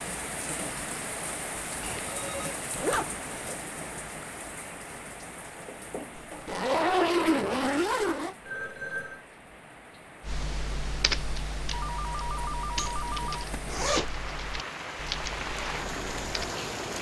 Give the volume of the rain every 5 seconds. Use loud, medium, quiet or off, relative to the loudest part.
loud, medium, medium, loud.